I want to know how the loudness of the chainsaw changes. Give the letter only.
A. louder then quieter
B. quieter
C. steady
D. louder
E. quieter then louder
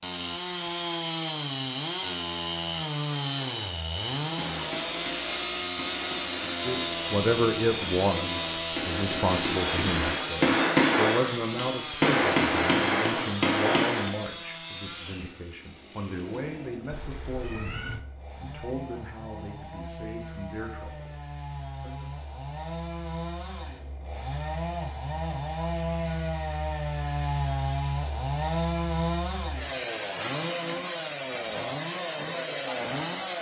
E.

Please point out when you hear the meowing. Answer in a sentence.
The meowing can be heard from 16.9 to 18.1 s.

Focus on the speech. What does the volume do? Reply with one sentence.
The volume of the speech goes down.